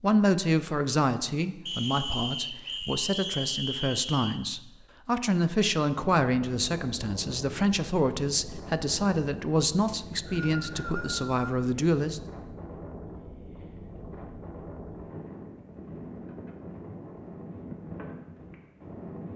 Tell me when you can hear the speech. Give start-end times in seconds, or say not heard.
0.0-12.2.